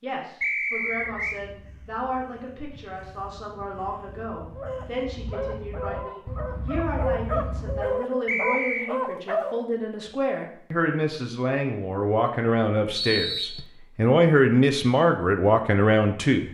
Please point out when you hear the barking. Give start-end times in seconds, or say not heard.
4.5-9.7.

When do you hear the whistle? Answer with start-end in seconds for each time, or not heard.
0.4-1.4, 8.2-8.9, 12.9-13.7.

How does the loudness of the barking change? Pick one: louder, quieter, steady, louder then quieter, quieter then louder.
louder.